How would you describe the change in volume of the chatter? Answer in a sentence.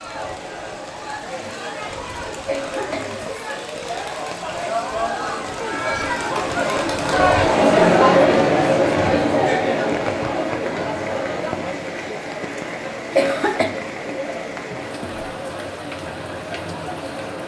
The volume of the chatter goes up, then down.